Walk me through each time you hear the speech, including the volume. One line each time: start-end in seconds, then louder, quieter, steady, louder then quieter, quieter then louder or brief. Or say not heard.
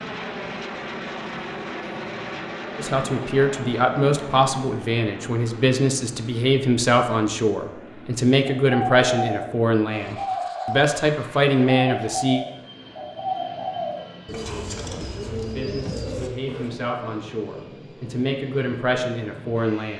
2.8-12.4 steady
15.1-19.9 louder.